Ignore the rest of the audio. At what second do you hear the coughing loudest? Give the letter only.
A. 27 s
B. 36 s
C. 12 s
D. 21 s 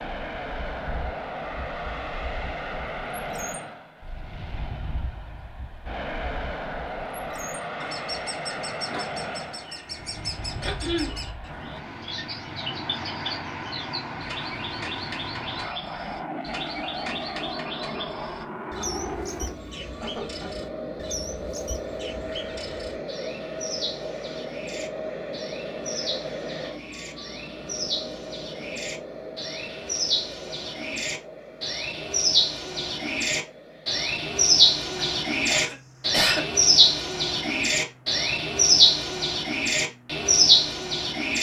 B.